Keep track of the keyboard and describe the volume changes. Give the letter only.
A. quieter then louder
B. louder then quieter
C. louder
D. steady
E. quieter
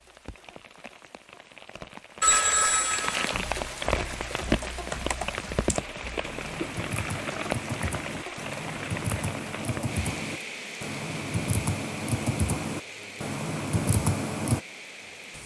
C.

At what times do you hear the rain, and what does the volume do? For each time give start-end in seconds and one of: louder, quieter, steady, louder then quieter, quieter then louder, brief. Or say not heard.
0.0-15.4 louder then quieter.